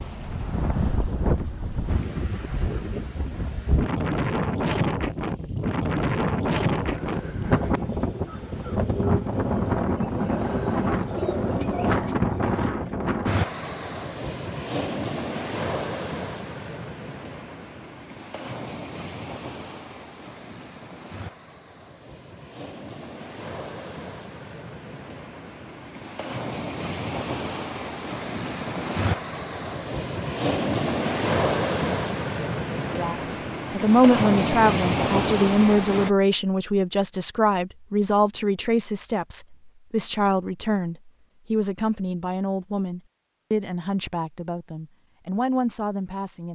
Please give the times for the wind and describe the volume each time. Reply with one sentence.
The wind can be heard from 0.0 to 36.1 s, getting quieter then louder.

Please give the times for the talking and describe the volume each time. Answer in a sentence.
The talking can be heard from 32.9 to 46.5 s, getting quieter.